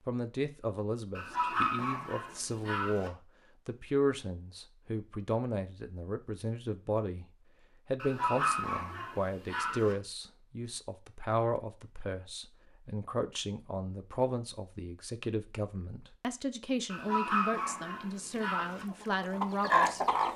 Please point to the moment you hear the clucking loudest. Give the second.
20 s.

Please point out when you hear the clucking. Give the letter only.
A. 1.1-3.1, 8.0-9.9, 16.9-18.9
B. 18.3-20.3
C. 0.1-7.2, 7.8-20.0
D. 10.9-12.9
B.